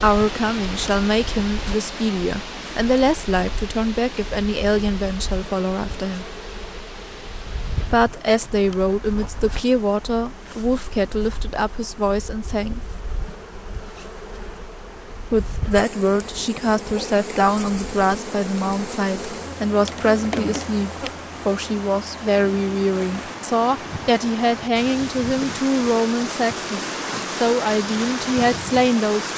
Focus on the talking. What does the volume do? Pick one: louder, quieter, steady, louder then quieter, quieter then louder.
steady.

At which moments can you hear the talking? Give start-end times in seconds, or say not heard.
0.0-6.2, 7.9-12.8, 15.3-29.3.